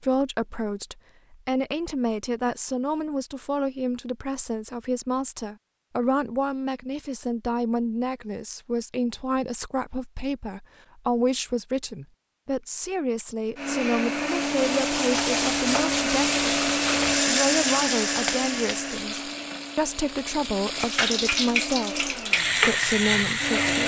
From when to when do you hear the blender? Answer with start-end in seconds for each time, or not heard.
13.6-23.8.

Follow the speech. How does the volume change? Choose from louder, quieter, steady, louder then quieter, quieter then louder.
steady.